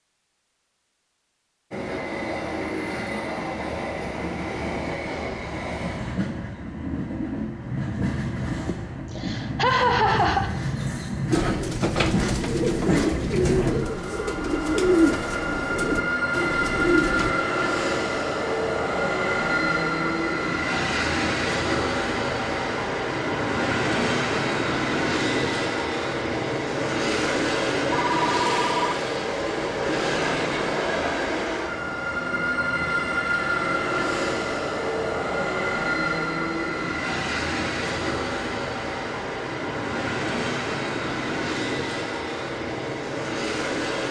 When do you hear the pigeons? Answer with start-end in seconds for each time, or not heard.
11.3-17.4.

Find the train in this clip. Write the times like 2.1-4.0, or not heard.
1.7-44.0.